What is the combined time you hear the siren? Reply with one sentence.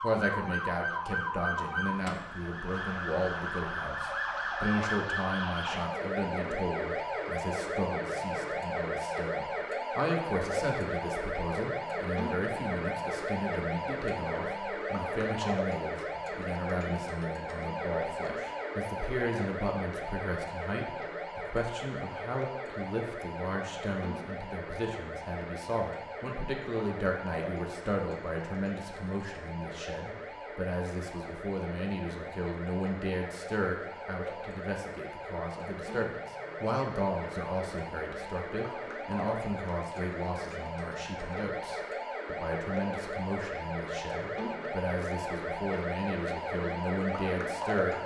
The siren can be heard for 48 seconds in total.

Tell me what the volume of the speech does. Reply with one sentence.
The loudness of the speech stays about the same.